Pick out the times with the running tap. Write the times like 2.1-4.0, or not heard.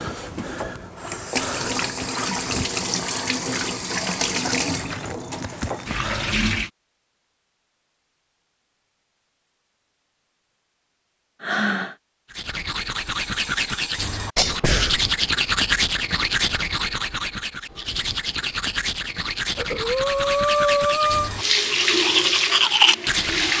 0.0-6.7, 21.4-23.5.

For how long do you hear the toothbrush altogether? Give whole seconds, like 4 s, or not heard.
11 s.